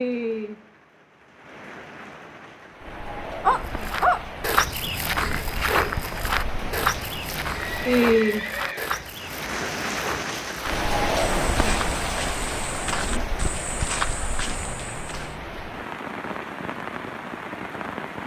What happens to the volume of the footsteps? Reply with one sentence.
The volume of the footsteps goes down.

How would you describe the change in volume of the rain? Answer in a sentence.
The loudness of the rain goes up, then down.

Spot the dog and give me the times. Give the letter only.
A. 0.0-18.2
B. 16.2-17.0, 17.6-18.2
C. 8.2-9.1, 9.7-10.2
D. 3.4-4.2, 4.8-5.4
D.